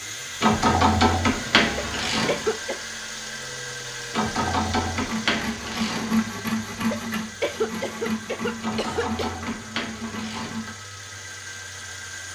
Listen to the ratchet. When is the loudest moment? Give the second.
1 s.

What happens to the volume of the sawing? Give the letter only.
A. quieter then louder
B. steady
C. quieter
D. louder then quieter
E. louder
C.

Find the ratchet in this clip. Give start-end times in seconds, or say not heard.
0.4-2.5, 4.1-6.2, 8.6-10.8.